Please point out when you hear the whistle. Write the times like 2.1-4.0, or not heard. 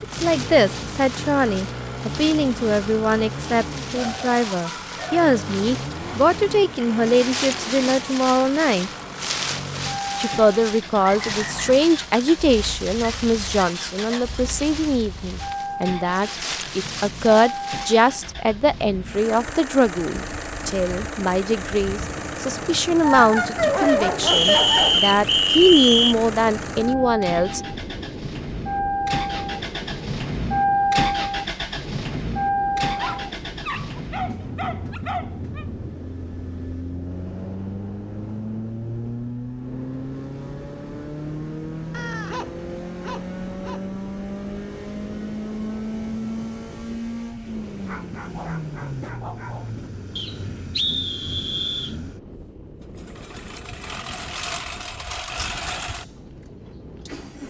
11.0-11.8, 24.2-26.1, 50.1-52.0.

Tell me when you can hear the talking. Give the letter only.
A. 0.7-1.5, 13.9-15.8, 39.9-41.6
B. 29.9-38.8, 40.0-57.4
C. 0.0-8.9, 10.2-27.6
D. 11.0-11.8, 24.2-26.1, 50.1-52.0
C.